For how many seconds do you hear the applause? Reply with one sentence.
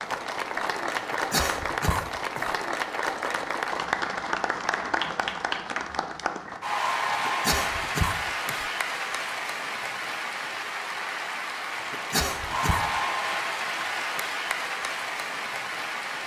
The applause can be heard for 16 seconds in total.